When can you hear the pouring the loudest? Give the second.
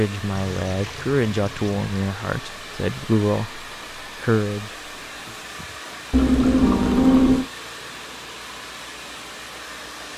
7 s.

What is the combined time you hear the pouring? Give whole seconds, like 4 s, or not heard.
3 s.